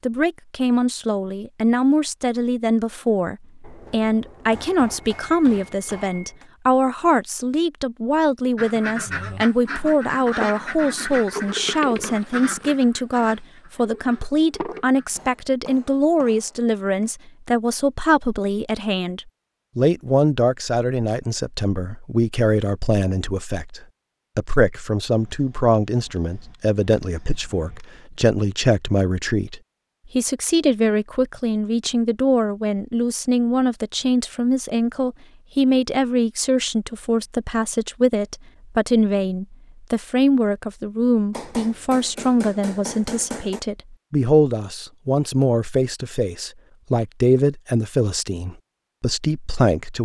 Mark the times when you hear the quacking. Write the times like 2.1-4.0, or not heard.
8.6-15.2.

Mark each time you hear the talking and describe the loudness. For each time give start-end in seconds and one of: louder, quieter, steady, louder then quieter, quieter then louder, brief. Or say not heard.
0.0-50.0 steady.